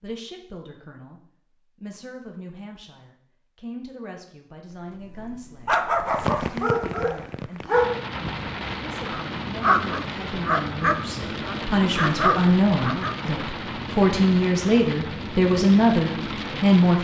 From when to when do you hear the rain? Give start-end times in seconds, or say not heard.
5.9-17.0.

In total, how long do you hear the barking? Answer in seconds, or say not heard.
8 s.